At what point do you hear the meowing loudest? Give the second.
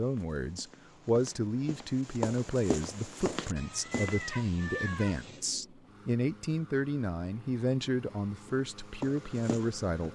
5 s.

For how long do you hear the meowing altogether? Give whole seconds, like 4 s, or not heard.
2 s.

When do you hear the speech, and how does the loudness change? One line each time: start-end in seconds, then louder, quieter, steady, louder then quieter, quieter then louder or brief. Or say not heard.
0.0-10.1 steady.